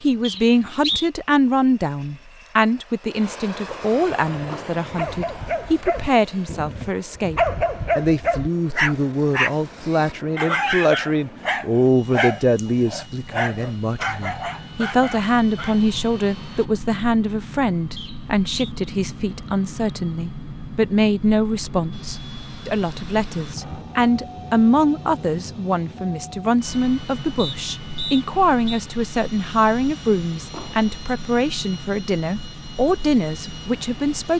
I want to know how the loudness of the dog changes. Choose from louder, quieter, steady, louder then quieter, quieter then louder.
louder then quieter.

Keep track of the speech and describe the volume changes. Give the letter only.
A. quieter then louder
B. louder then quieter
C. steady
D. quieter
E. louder
C.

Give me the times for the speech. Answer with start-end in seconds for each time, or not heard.
0.0-34.3.